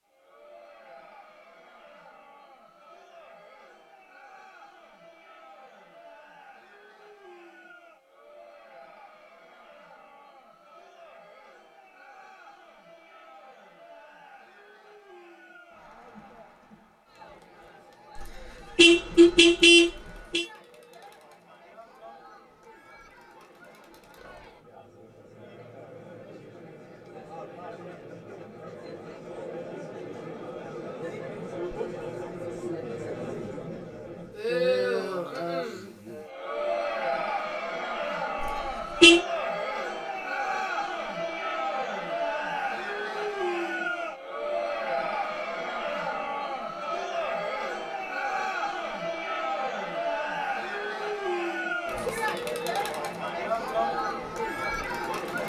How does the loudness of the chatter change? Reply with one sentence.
The volume of the chatter goes up.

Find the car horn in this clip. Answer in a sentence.
You can hear the car horn from 18.1 to 20.4 s and from 38.4 to 39.2 s.